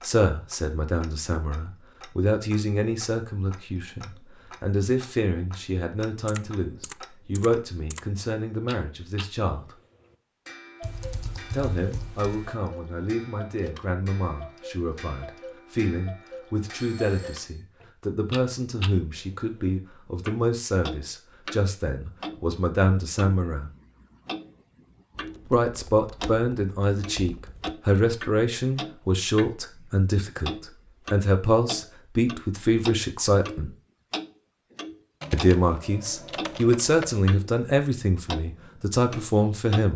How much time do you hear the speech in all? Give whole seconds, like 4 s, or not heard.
35 s.